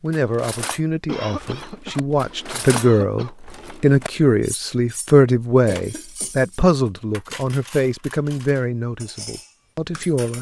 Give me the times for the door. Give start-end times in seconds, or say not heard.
not heard.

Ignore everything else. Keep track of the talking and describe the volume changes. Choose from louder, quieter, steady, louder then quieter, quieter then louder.
louder then quieter.